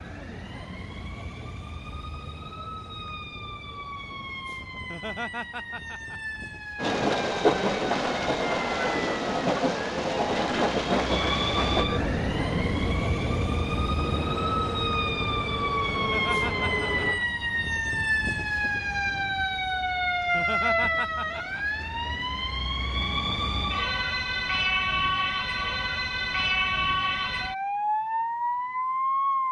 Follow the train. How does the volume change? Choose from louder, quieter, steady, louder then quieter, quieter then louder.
quieter.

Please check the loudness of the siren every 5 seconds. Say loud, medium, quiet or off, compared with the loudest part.
quiet, medium, loud, loud, loud, loud.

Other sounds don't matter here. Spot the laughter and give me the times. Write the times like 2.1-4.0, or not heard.
4.8-6.4, 15.9-17.4, 20.2-21.6.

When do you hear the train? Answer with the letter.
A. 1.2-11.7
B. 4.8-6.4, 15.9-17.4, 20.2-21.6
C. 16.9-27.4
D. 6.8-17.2
D.